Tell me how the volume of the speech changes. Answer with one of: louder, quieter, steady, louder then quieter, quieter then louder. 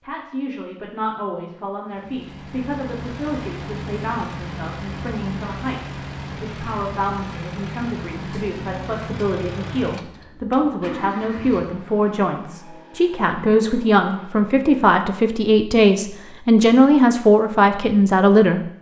louder.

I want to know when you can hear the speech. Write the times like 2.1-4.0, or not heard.
0.0-18.6.